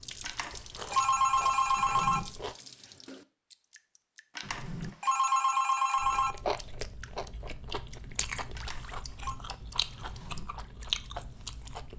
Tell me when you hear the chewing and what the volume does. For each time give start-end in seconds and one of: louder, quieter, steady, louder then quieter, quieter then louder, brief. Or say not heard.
0.0-2.5 brief
6.0-11.9 quieter then louder.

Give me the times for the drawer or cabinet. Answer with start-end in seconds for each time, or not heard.
1.8-2.2, 4.4-4.9, 9.9-10.4.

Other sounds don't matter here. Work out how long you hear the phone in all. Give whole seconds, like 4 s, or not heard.
5 s.